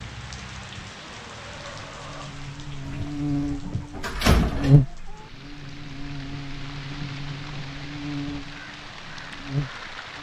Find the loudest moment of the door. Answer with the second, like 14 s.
4 s.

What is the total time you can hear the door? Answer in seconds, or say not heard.
2 s.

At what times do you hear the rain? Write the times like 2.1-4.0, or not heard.
0.0-10.1.